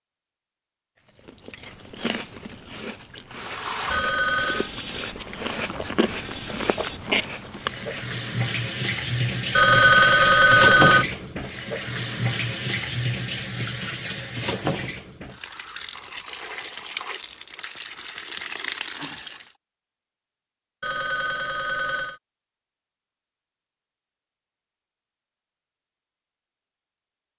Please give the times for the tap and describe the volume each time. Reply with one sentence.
You can hear the tap from 3.3 to 19.5 s, getting louder then quieter.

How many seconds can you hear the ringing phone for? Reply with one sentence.
You can hear the ringing phone for 4 seconds altogether.